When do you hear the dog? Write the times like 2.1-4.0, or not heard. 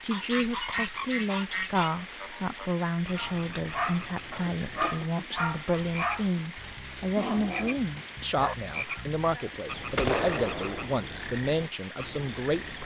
3.1-8.6.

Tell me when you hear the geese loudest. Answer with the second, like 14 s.
10 s.